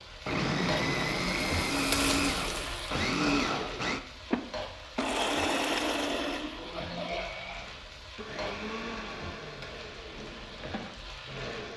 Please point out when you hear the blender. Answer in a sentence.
You can hear the blender from 0.2 to 11.7 s.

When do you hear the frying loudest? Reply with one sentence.
The volume of the frying peaks at 2 seconds.